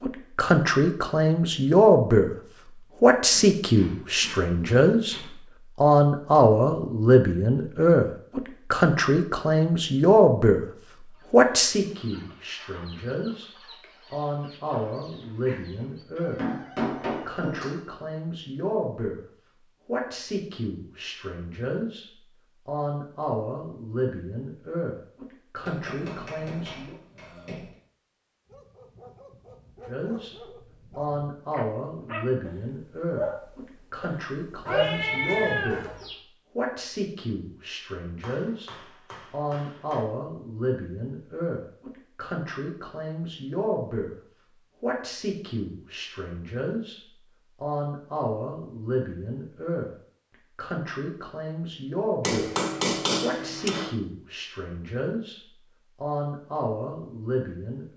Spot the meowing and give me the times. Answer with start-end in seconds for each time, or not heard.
34.6-36.1.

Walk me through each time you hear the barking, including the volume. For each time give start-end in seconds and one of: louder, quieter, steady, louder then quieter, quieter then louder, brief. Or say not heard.
28.4-34.9 louder then quieter.